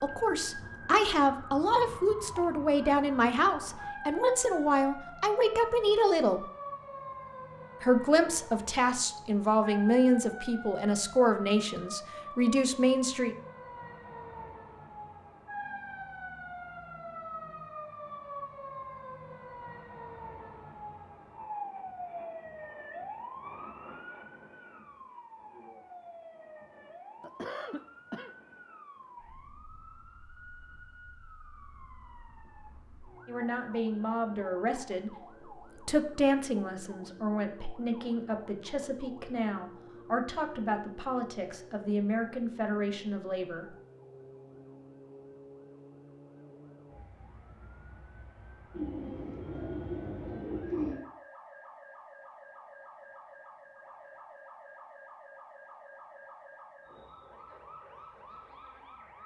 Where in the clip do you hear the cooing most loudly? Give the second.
51 s.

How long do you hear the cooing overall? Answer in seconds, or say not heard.
2 s.